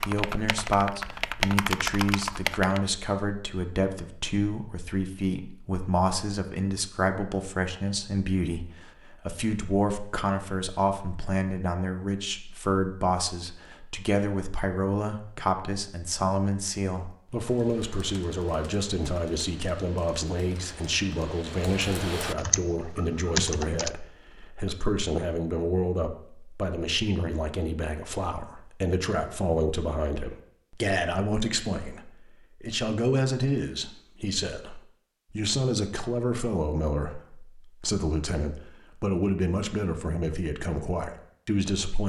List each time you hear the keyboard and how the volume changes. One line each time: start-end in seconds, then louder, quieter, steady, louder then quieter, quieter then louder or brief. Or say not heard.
0.0-2.8 brief
17.3-23.9 louder.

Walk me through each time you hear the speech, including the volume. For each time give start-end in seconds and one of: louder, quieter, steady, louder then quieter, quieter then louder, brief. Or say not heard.
0.1-42.0 steady.